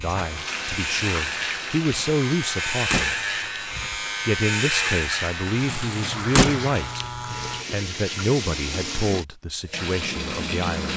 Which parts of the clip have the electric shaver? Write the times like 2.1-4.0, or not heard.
0.0-7.7.